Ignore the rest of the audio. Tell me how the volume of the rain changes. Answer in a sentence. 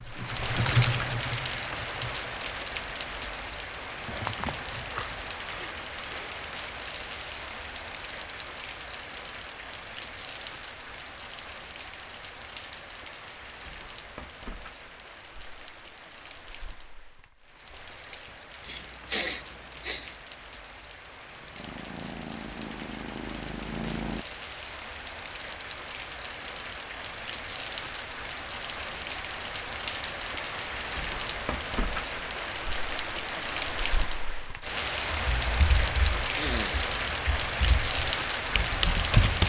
The volume of the rain goes down, then up.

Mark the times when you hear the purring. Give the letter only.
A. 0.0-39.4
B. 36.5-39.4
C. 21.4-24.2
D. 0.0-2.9
C.